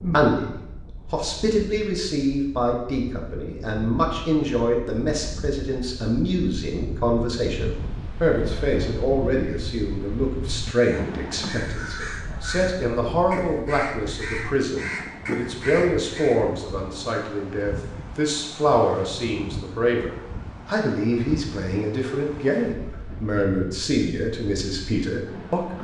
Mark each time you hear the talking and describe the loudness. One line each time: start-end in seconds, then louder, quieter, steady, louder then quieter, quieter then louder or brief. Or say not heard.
0.0-25.7 steady.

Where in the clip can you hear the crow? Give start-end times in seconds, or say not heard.
10.8-16.4.